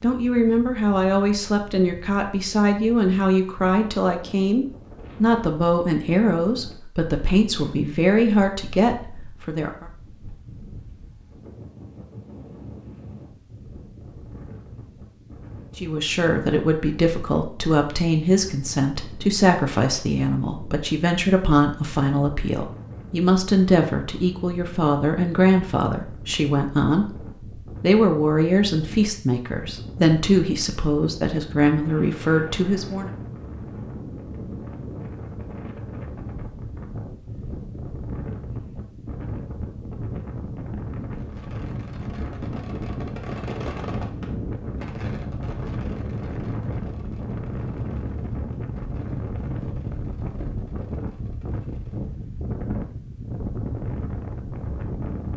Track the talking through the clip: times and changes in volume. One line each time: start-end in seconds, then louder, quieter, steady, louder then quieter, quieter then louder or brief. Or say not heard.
0.0-9.8 steady
15.8-33.1 steady.